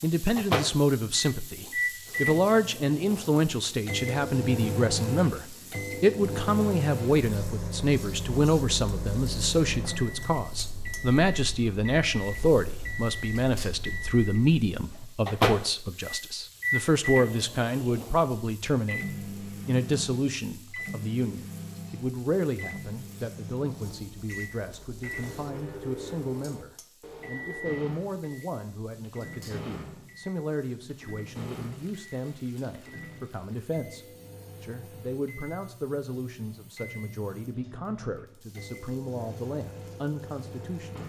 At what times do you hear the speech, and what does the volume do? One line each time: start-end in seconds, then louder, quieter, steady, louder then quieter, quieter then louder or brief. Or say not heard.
0.0-41.0 quieter.